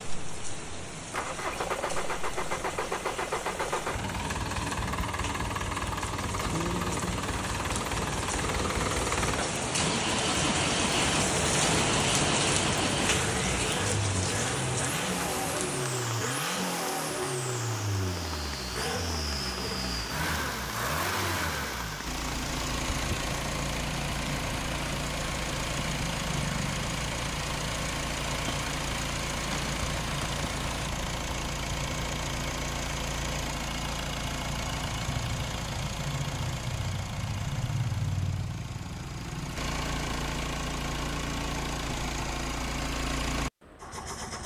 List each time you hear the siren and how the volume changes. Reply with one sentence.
You can't hear the siren here.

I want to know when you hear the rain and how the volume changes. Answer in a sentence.
You can hear the rain from 0.0 to 30.9 s, getting louder then quieter.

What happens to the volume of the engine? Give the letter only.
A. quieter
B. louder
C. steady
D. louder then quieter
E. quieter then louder
C.